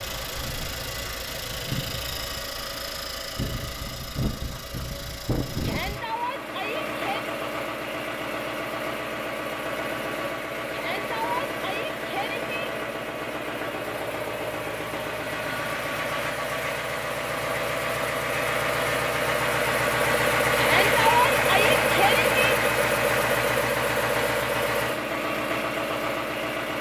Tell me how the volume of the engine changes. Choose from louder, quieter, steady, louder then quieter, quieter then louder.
louder.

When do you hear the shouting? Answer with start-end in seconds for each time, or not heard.
5.6-7.2, 10.7-12.4, 20.6-22.6.